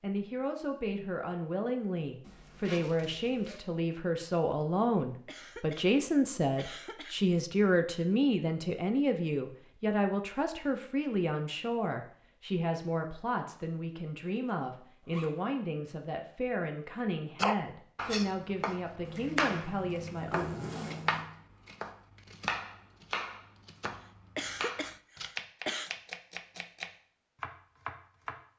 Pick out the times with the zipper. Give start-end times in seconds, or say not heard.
2.2-3.6, 14.3-15.3, 19.0-21.3.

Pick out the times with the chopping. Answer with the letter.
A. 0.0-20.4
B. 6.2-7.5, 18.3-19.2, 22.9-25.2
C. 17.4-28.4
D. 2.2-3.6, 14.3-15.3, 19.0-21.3
C.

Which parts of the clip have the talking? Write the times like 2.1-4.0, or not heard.
0.0-20.4.